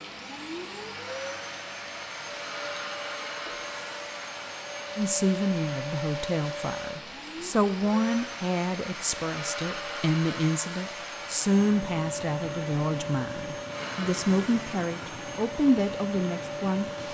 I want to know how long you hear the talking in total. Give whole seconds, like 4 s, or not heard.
12 s.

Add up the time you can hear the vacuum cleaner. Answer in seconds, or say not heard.
17 s.